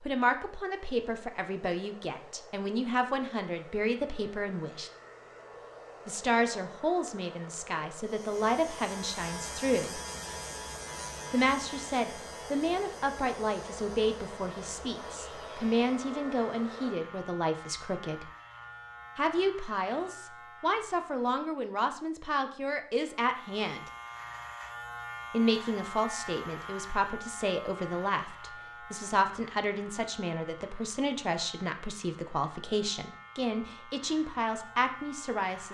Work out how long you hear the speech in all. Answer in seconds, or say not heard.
31 s.